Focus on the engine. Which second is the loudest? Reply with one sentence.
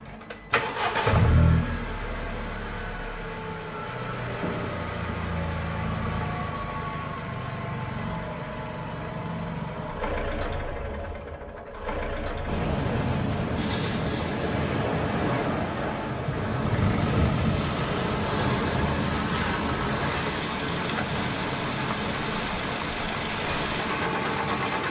The loudest moment of the engine is at 1 second.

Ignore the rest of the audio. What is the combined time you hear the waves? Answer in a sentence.
You can hear the waves for 12 seconds altogether.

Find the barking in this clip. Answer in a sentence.
The barking can't be heard in this clip.